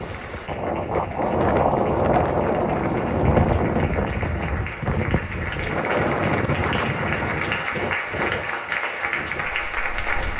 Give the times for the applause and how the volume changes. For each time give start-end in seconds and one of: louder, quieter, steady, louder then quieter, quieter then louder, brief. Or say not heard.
0.0-10.3 louder.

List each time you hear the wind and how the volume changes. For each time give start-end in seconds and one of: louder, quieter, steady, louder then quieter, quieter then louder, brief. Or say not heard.
0.0-10.3 quieter.